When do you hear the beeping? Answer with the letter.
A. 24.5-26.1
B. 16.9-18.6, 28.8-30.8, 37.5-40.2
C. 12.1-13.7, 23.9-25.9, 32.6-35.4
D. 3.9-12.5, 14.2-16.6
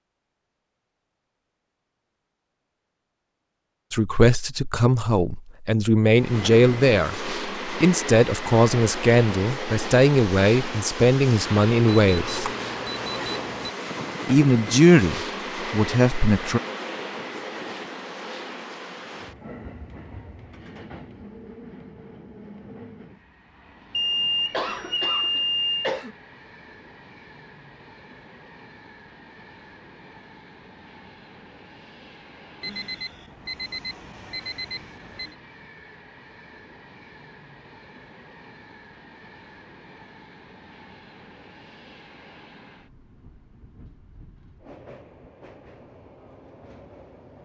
C.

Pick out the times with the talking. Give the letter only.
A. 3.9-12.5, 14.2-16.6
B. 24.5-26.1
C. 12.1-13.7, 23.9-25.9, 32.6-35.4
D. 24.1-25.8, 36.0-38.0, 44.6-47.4
A.